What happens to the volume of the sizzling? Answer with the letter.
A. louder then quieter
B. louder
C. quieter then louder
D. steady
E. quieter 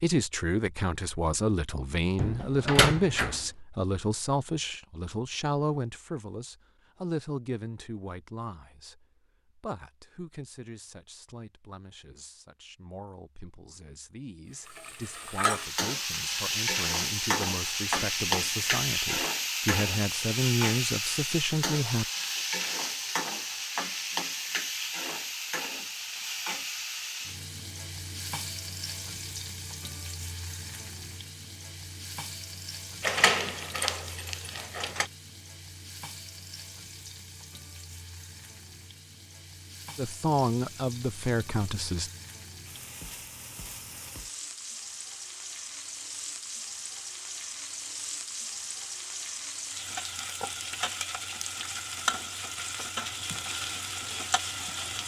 C.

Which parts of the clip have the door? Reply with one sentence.
The door can be heard from 2.1 to 3.5 s and from 33.0 to 35.0 s.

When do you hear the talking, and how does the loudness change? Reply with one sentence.
The talking can be heard from 0.0 to 22.1 s, getting quieter then louder; and briefly from 40.0 to 42.1 s.